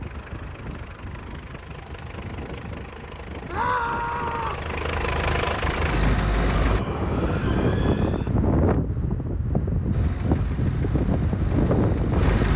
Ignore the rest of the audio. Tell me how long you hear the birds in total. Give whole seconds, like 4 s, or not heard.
not heard.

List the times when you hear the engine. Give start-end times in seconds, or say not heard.
0.0-6.8, 9.9-12.5.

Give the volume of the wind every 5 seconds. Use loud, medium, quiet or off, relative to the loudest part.
quiet, loud, loud.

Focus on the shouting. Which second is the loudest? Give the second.
4 s.